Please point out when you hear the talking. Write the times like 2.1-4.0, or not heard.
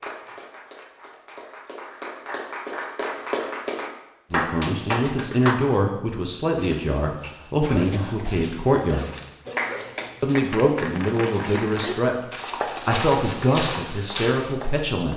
4.3-9.1, 10.2-12.2, 12.8-15.1.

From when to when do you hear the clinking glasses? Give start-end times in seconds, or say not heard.
not heard.